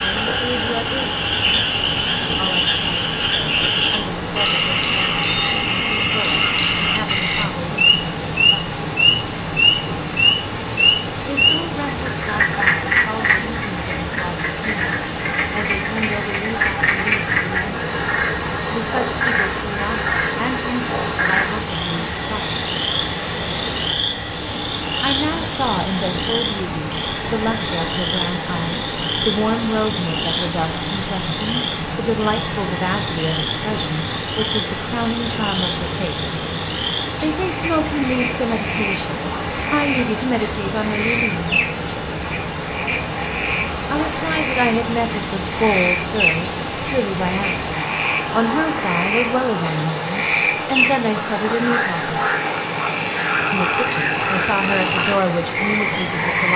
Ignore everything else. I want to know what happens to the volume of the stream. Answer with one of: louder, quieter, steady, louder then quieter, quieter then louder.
steady.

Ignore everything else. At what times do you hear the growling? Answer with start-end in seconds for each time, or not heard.
not heard.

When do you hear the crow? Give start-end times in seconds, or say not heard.
not heard.